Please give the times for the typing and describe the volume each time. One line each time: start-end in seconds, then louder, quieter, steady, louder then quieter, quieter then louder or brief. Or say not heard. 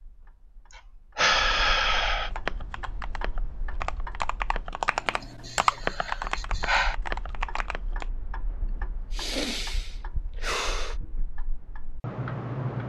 2.3-8.1 louder then quieter.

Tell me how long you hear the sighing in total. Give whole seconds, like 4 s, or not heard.
5 s.